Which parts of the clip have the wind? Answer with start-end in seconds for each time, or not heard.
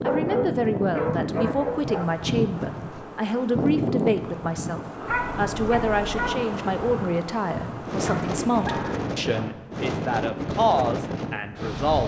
0.0-12.0.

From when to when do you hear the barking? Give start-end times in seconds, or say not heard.
0.1-2.0, 5.0-6.3, 8.1-9.6.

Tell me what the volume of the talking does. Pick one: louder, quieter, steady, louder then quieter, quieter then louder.
steady.